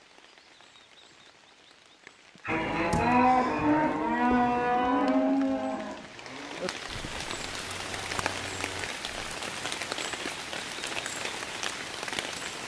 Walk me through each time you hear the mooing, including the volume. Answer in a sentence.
You can hear the mooing from 2.5 to 9.1 s, getting quieter.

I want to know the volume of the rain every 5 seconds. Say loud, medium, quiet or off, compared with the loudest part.
quiet, loud, loud.